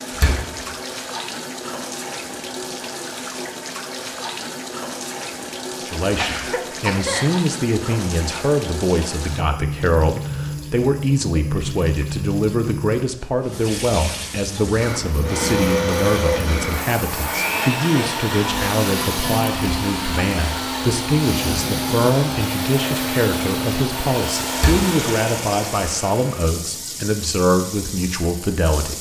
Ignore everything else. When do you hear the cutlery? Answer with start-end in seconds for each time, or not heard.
not heard.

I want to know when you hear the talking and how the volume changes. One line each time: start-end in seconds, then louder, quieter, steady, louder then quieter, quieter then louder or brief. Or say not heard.
5.8-28.9 steady.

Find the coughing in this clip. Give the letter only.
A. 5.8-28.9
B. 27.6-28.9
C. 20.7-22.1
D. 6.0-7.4
D.